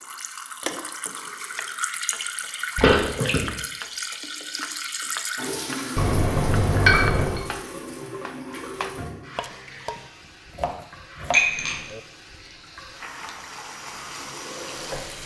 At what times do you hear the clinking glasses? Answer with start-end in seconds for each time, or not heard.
2.8-3.5, 6.0-7.4, 11.3-11.8.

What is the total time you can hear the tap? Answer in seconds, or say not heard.
15 s.